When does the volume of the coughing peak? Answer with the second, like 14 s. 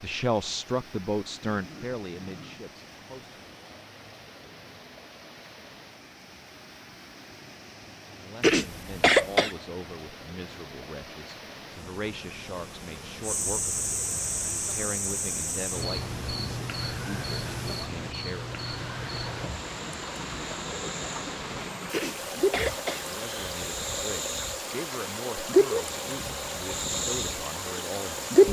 9 s.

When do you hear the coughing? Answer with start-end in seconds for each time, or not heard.
8.4-9.6, 21.9-23.6.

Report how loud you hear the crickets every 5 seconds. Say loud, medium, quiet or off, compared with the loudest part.
off, off, medium, medium, medium, loud.